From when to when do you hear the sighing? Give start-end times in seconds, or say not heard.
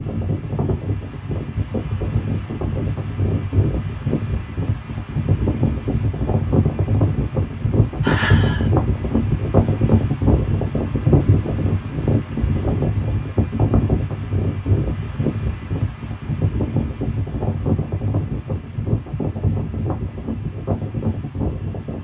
8.0-8.7.